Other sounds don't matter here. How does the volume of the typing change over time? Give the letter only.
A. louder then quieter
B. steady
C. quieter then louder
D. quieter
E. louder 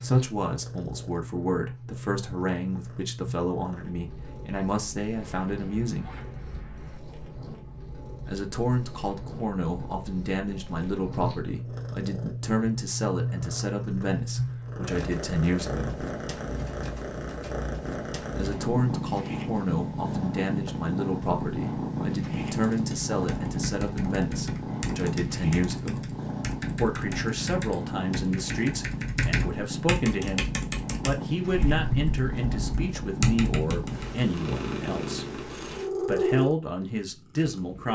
E.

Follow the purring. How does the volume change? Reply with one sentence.
The loudness of the purring goes up.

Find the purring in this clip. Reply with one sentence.
You can hear the purring from 0.0 to 37.9 s.